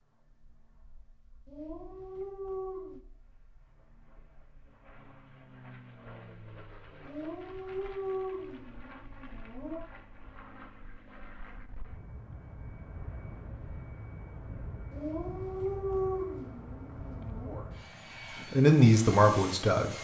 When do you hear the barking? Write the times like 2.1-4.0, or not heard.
1.4-3.0, 7.0-9.9, 14.9-17.6.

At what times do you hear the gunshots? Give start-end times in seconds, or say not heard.
not heard.